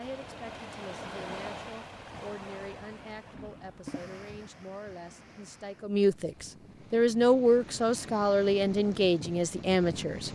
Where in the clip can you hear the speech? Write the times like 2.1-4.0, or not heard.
0.0-10.2.